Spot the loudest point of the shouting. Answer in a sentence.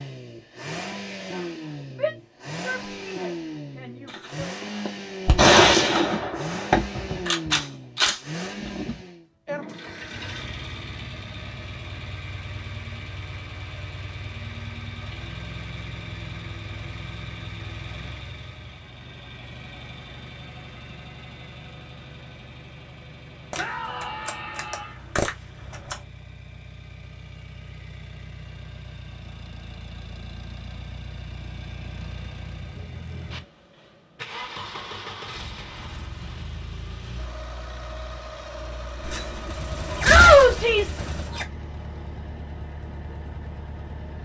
The volume of the shouting peaks at 40 seconds.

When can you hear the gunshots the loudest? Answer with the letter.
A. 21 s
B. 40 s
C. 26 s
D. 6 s
D.